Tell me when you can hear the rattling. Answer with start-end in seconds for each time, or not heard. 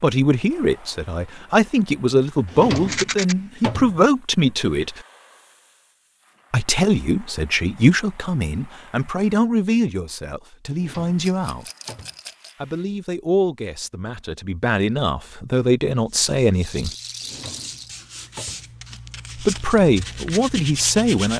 2.8-3.4, 11.2-12.6, 16.6-17.9.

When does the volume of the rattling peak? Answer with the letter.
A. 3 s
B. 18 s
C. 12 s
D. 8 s
A.